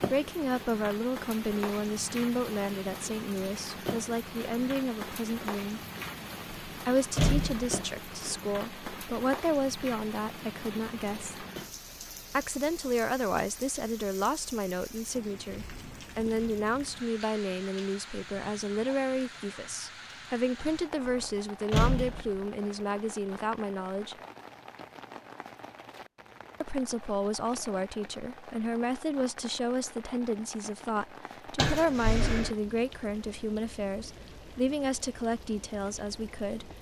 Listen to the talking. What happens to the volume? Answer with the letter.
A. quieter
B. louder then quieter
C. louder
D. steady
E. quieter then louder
D.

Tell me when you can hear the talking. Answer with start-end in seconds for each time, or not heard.
0.0-5.8, 6.8-11.4, 12.3-24.1, 26.6-36.7.